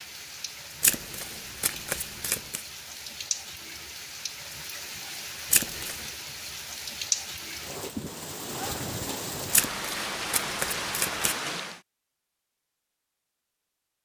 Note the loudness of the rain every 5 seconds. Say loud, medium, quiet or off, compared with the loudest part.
medium, loud, loud.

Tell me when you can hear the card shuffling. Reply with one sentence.
You can hear the card shuffling from 0.8 to 2.6 s, from 5.5 to 6.0 s and from 9.5 to 11.3 s.